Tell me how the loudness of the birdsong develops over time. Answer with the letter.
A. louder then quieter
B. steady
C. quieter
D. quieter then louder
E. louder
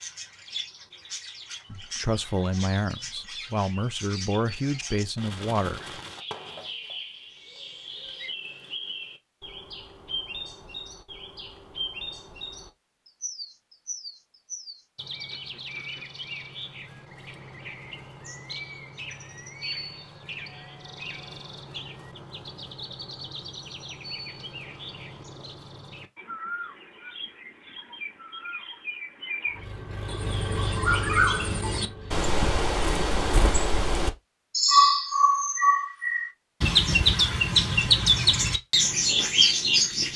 E.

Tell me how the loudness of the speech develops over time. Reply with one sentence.
The volume of the speech goes down, then up.